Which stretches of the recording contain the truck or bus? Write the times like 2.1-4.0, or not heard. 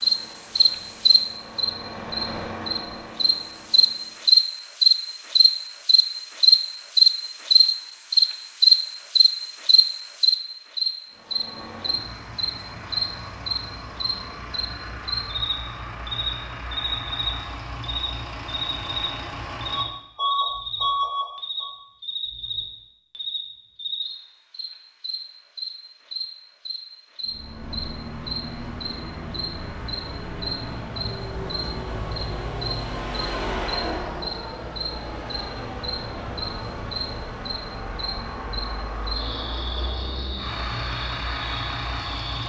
0.0-4.3, 11.1-21.8, 27.2-42.4.